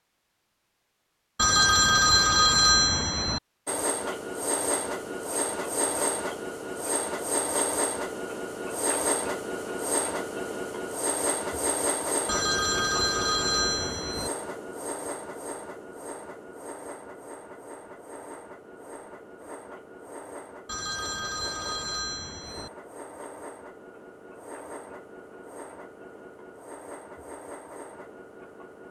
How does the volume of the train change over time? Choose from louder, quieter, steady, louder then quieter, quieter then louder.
quieter.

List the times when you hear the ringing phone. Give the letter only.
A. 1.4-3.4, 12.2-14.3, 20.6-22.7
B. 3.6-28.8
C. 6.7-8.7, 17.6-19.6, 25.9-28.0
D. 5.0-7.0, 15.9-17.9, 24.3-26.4
A.